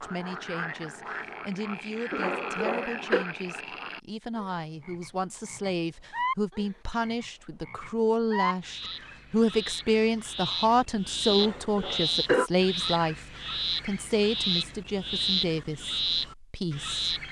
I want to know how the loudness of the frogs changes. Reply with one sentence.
The loudness of the frogs goes up.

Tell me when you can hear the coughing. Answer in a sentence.
The coughing can be heard from 2.1 to 3.2 s and from 11.3 to 12.5 s.